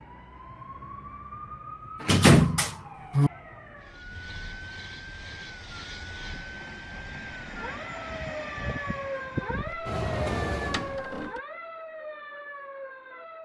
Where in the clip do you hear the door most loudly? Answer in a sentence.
The loudest moment of the door is at 2 seconds.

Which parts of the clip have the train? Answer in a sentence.
You can hear the train from 3.8 to 11.1 s.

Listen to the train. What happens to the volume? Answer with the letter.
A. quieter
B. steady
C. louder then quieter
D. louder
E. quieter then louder
D.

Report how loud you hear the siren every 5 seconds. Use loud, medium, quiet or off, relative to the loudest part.
medium, loud, loud.